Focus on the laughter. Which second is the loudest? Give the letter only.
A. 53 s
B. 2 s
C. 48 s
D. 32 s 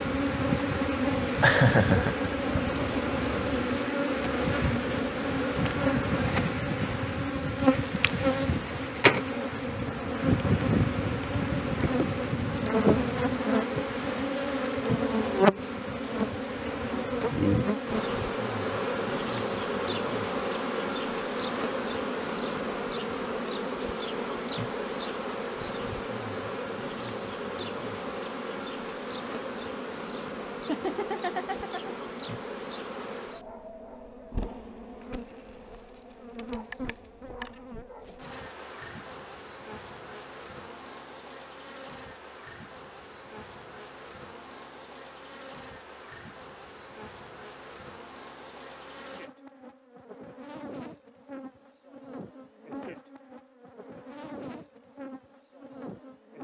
B.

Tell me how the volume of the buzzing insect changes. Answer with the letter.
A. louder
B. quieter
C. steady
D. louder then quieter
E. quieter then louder
B.